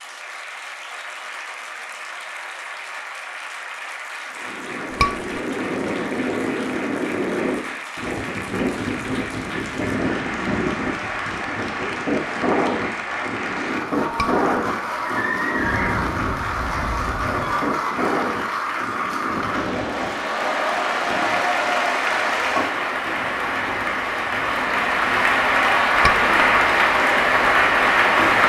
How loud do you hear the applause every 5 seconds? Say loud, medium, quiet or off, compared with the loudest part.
quiet, quiet, medium, medium, medium, loud.